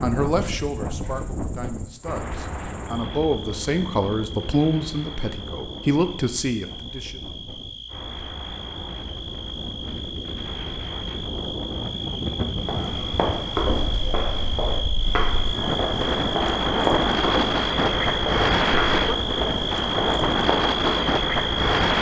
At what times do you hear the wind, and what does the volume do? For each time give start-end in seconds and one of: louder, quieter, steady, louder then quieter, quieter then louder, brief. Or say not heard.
0.0-21.9 quieter then louder.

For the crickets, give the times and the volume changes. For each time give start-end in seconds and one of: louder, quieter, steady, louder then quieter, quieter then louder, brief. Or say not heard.
0.0-21.9 louder.